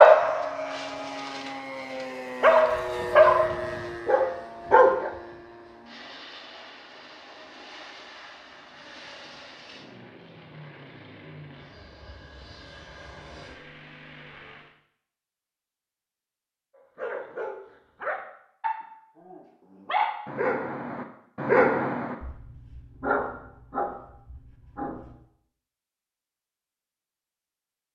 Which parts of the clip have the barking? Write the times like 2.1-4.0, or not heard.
0.0-5.1, 16.9-25.1.